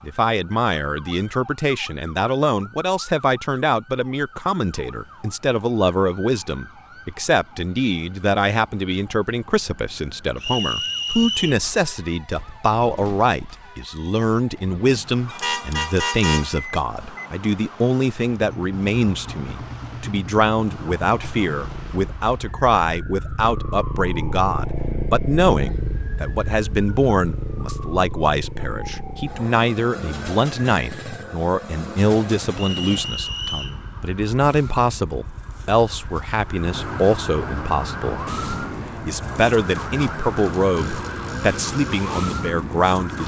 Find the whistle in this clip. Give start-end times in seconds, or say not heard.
10.4-11.6, 32.5-33.8.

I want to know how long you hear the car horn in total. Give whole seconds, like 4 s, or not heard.
2 s.